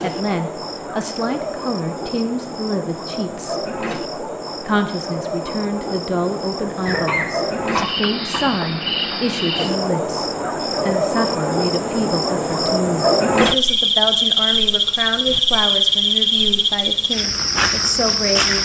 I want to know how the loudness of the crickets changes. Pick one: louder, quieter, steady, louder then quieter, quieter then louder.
louder.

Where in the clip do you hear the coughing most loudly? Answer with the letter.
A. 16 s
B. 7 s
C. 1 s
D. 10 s
B.